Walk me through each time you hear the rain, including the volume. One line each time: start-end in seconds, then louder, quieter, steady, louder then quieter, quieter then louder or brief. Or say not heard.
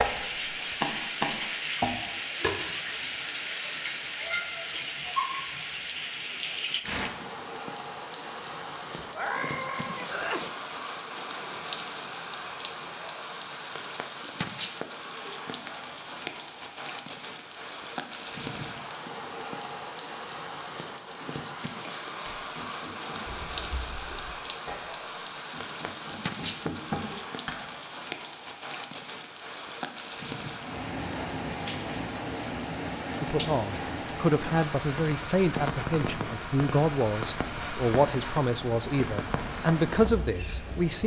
0.0-41.0 steady.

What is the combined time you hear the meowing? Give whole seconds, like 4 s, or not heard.
3 s.